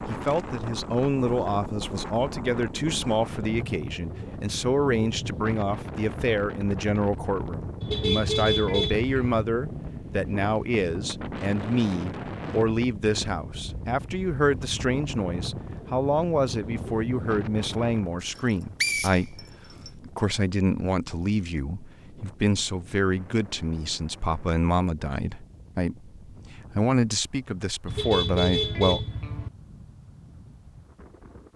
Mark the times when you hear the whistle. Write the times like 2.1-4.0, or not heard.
18.2-19.9.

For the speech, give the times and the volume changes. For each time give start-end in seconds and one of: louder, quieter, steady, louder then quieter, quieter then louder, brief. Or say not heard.
0.1-29.1 steady.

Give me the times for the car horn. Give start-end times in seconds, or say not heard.
7.8-9.4, 27.9-29.5.